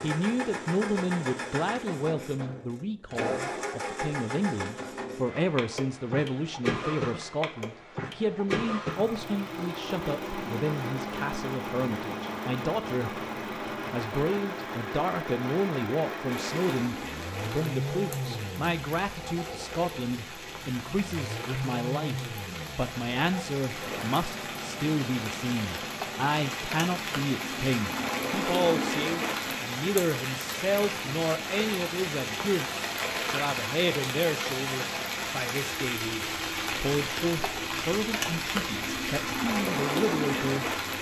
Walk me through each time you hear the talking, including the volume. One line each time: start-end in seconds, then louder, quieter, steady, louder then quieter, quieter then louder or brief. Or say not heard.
0.0-13.2 steady
13.9-40.9 steady.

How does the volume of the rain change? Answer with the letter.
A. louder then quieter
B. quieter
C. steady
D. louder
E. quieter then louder
D.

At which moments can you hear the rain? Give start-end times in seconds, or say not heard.
16.3-40.9.